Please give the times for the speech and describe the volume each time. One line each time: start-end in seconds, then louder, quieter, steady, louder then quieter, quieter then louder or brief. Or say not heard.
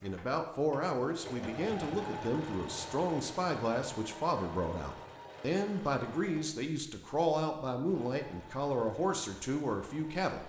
0.0-10.4 steady.